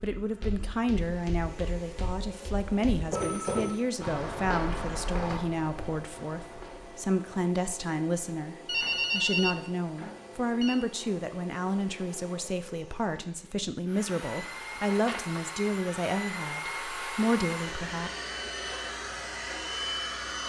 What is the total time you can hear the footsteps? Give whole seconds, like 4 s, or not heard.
7 s.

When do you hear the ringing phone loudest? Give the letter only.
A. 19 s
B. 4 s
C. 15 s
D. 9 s
D.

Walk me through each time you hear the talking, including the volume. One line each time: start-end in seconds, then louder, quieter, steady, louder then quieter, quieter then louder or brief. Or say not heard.
0.0-18.1 steady.